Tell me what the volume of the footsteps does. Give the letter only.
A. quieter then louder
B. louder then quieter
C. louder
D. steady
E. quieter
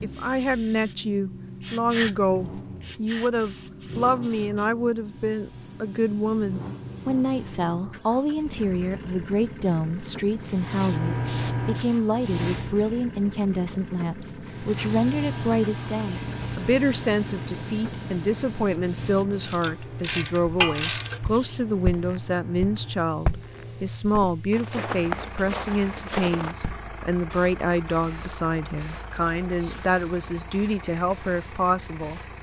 A.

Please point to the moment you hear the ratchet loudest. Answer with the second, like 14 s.
21 s.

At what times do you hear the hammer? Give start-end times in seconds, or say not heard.
not heard.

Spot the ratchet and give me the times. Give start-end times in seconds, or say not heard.
18.9-21.2.